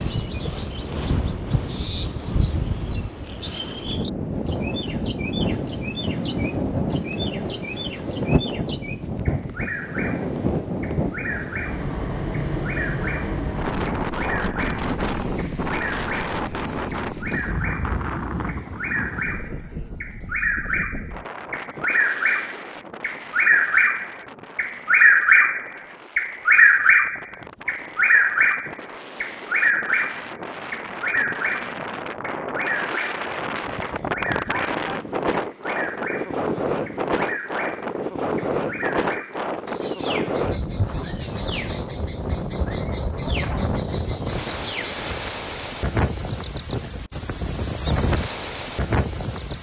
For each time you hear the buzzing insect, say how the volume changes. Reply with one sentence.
The buzzing insect can't be heard in this clip.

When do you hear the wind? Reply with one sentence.
The wind can be heard from 0.0 to 49.5 s.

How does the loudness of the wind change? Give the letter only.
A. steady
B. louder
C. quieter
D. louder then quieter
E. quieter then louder
E.